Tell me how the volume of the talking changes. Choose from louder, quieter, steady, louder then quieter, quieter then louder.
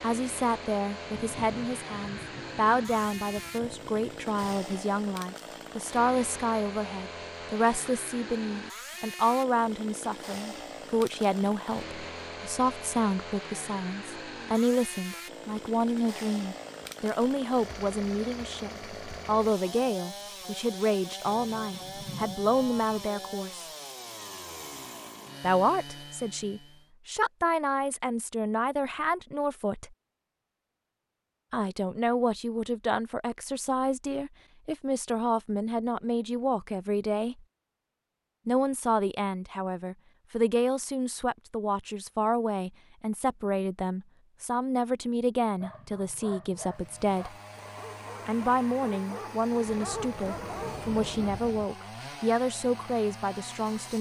steady.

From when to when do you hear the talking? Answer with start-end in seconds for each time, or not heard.
0.0-23.6, 25.4-29.9, 31.5-37.4, 38.5-47.4, 48.2-53.9.